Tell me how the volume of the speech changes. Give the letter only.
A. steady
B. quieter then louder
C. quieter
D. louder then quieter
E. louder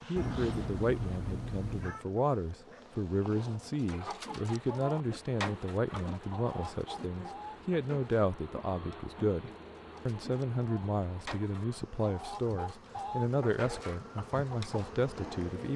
A.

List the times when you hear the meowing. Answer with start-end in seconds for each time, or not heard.
0.1-2.0.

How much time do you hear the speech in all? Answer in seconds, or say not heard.
16 s.